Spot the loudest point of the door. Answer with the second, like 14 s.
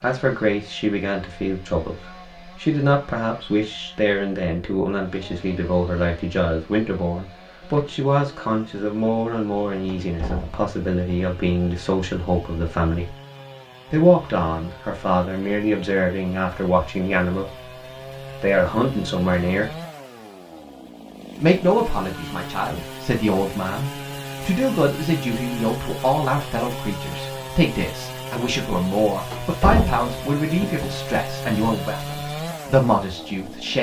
30 s.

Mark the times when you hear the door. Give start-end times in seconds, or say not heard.
9.8-10.6, 29.3-30.9.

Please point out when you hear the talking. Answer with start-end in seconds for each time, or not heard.
0.0-13.2, 13.9-17.7, 18.4-19.7, 21.4-33.7.